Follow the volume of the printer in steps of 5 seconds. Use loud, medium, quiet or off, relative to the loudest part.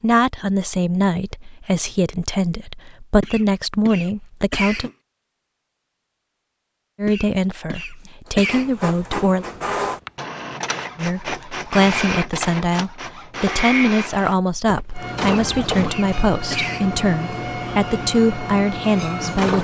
off, loud, loud, loud.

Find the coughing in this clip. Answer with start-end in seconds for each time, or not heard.
3.2-5.0, 7.0-8.7, 15.2-16.9.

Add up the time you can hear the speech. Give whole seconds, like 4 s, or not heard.
16 s.